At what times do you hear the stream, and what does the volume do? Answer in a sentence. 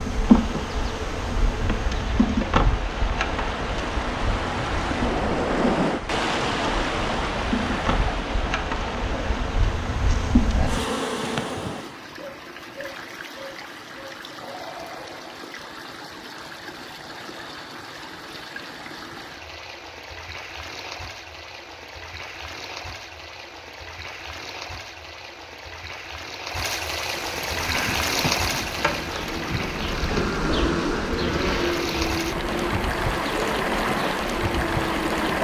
The stream can be heard from 0.1 to 35.3 s, getting quieter then louder.